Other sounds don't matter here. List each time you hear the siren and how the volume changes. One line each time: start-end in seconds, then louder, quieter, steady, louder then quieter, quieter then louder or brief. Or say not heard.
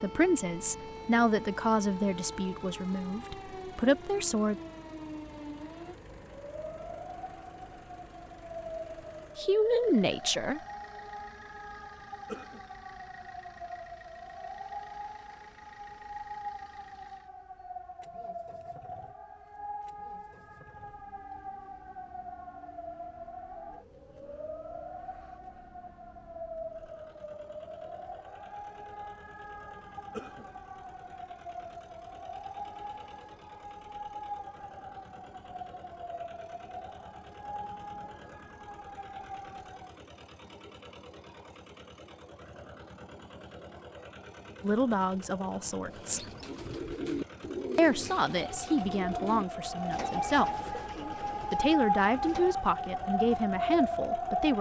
0.0-40.0 steady
48.3-54.5 louder.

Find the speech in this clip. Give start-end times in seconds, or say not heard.
0.0-4.5, 9.3-10.6, 44.6-46.2, 47.8-50.5, 51.5-54.5.